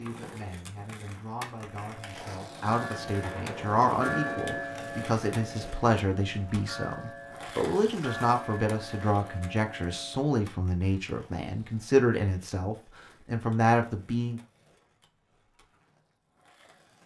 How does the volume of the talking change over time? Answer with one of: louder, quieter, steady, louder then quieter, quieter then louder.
louder.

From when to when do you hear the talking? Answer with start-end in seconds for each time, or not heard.
0.0-14.4.